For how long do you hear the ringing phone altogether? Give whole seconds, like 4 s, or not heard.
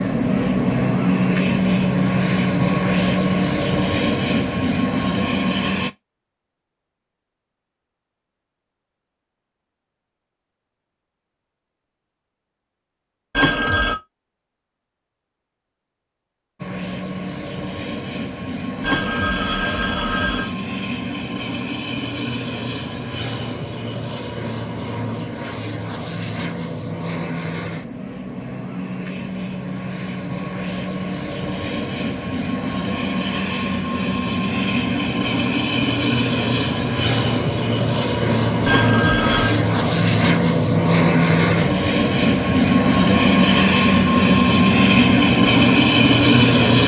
3 s.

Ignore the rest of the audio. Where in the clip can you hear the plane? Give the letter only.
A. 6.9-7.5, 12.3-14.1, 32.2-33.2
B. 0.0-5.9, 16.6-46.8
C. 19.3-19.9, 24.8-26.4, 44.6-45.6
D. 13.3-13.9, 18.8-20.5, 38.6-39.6
B.